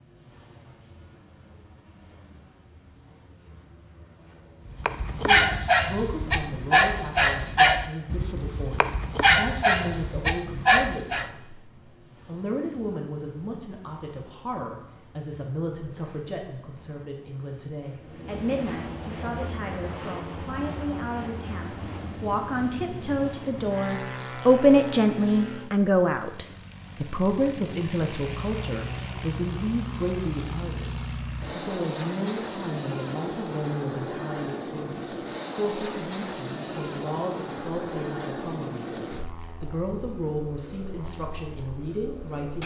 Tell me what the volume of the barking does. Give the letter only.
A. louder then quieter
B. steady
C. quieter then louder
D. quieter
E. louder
B.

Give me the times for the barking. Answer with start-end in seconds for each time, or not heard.
4.7-11.3.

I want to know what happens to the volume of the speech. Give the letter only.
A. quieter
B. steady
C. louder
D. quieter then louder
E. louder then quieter
E.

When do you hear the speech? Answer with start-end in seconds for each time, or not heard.
5.2-11.7, 12.2-42.6.